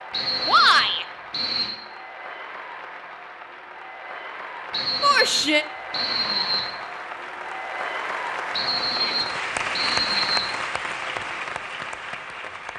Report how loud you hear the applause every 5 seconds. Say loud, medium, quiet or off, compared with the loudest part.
medium, loud, loud.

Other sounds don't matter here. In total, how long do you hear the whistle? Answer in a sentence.
The whistle can be heard for 6 seconds in total.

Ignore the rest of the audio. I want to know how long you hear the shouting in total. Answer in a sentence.
The shouting can be heard for 2 seconds in total.